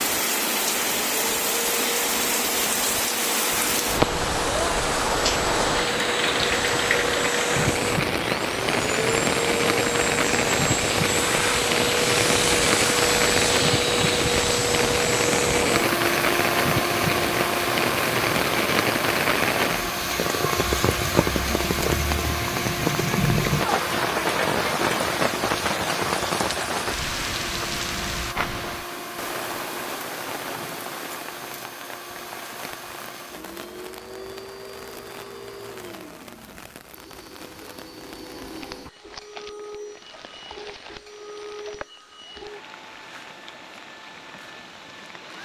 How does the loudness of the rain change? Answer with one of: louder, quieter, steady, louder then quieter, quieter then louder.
quieter.